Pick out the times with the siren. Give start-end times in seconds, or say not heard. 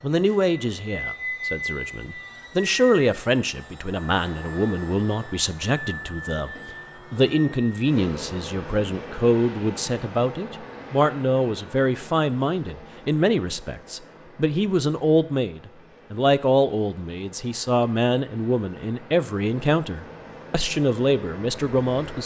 not heard.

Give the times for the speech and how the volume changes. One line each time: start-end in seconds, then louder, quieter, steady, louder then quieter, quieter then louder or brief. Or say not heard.
0.0-22.2 steady.